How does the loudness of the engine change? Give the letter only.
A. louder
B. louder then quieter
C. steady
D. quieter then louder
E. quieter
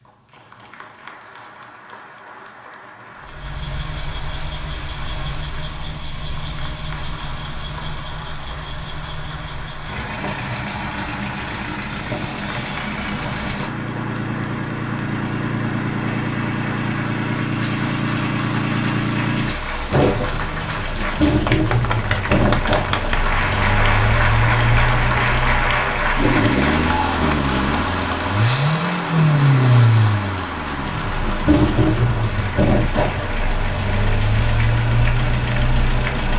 A.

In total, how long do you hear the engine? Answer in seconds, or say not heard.
33 s.